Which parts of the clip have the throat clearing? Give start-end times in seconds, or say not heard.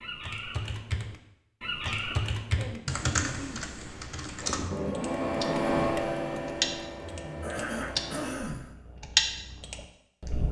1.9-3.6, 7.4-8.7.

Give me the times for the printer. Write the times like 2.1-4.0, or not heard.
4.4-8.3.